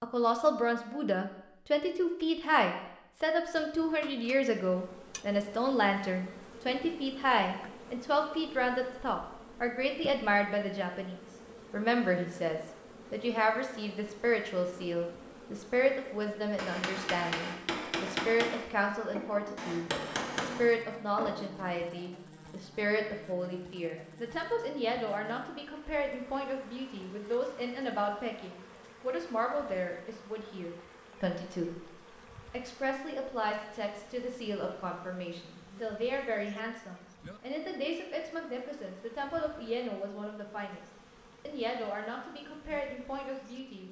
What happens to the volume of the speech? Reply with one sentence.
The volume of the speech goes down.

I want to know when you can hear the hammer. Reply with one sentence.
The hammer can be heard from 16.6 to 22.1 s.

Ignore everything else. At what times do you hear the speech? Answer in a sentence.
The speech can be heard from 0.0 to 43.8 s.